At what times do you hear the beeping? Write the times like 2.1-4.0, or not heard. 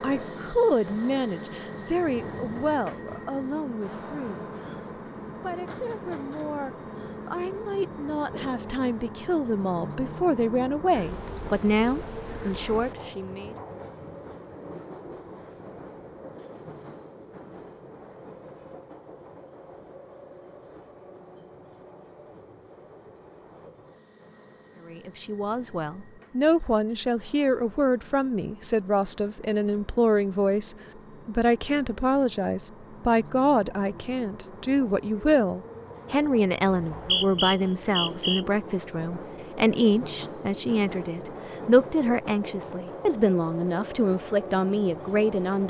10.9-12.9.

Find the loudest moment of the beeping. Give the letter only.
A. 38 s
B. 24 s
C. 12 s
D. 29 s
C.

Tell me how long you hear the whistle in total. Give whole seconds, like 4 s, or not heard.
2 s.